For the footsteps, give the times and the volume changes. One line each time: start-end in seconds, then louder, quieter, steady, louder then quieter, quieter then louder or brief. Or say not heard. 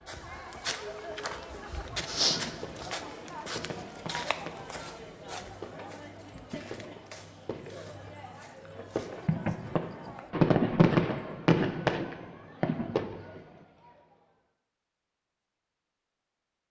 0.1-10.3 quieter.